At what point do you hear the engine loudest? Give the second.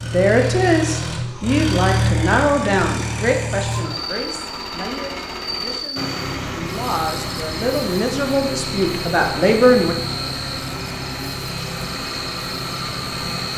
2 s.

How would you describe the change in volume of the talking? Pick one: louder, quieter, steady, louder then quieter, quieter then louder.
quieter then louder.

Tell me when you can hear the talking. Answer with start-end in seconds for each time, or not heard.
0.0-9.9.